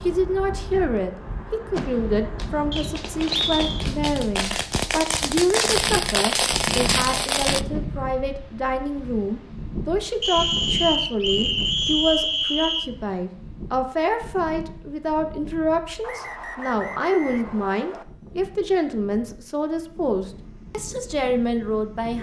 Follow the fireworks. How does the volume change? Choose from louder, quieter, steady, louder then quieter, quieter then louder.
louder.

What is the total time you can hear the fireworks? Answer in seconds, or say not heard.
6 s.